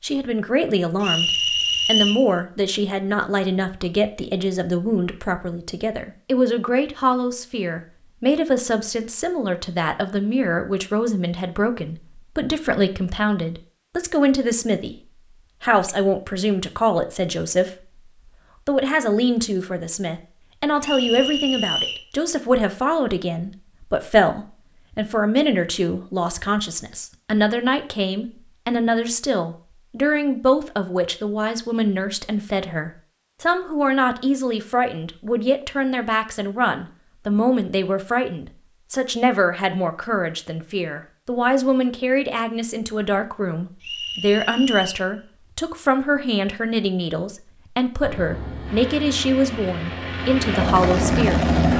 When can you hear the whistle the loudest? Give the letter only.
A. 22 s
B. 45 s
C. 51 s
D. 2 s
D.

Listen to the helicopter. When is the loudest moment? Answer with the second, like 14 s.
51 s.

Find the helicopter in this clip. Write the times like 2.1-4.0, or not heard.
48.0-51.7.